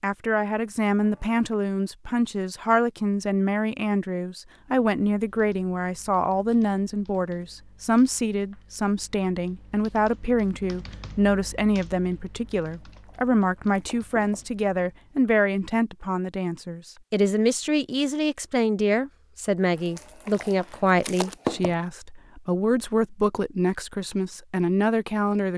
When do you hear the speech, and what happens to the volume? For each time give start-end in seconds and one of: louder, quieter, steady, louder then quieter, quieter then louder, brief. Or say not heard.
0.0-25.5 steady.